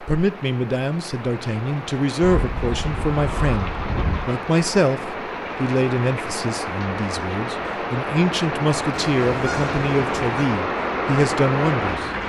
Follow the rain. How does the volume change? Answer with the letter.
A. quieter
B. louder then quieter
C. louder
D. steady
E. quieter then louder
C.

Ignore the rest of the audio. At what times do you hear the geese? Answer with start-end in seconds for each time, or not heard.
2.2-4.5, 9.0-10.5.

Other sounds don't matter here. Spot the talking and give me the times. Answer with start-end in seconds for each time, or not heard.
0.0-12.1.